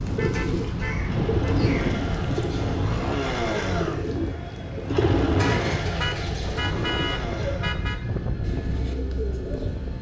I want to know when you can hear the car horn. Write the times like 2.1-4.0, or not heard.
0.1-1.7, 5.3-8.0.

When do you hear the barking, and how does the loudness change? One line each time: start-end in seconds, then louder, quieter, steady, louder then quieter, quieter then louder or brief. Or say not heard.
not heard.